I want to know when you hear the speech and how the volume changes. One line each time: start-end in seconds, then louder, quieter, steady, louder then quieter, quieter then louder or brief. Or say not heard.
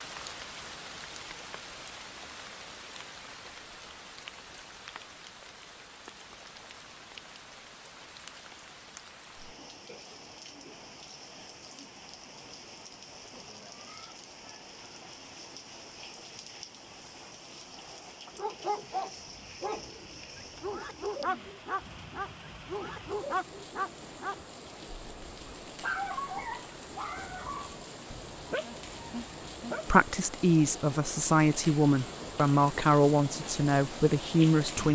29.9-34.9 steady.